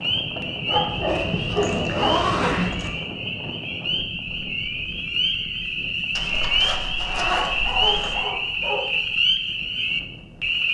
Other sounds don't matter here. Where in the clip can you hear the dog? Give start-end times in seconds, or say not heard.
0.7-2.2, 7.3-8.8.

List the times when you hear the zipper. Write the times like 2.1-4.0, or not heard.
0.8-2.9, 6.2-8.2.